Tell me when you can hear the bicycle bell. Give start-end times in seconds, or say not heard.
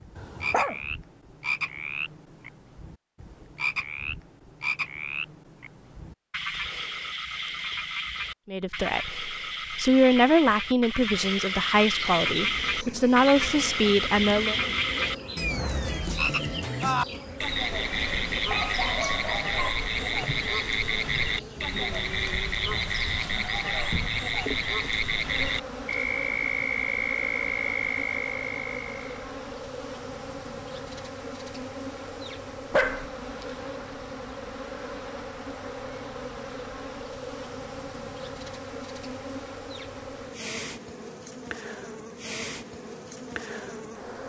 not heard.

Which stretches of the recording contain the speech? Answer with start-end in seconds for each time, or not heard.
8.4-14.6.